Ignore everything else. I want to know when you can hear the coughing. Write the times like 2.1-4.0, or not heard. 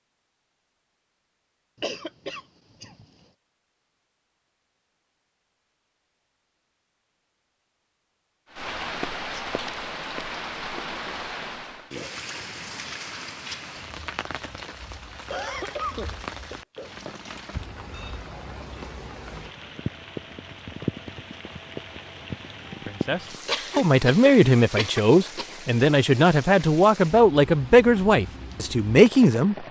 1.8-3.0, 15.3-16.9, 23.4-25.4.